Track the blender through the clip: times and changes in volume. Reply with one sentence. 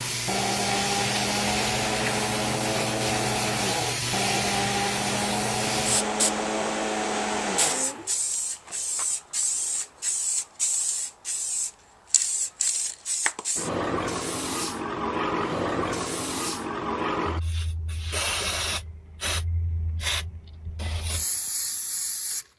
You can hear the blender from 0.1 to 8.1 s, at a steady volume.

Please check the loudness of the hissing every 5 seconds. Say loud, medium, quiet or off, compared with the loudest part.
loud, loud, loud, loud, medium.